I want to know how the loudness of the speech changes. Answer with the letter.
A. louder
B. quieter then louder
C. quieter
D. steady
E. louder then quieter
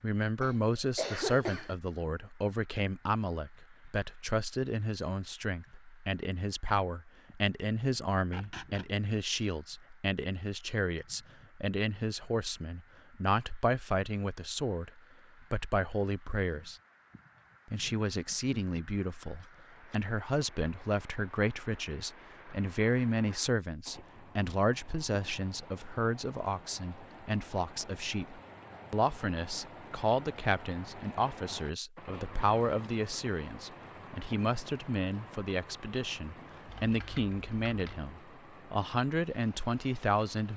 D.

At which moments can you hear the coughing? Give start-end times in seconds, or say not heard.
0.4-1.8.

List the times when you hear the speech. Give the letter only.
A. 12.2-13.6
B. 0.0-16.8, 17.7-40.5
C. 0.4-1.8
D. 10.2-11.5
B.